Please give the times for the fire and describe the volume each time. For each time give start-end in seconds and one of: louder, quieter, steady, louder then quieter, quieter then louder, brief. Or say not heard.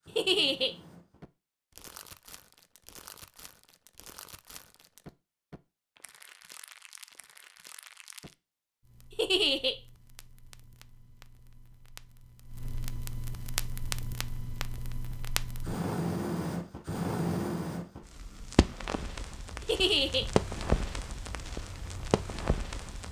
0.0-23.0 louder.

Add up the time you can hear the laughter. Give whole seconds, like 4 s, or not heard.
2 s.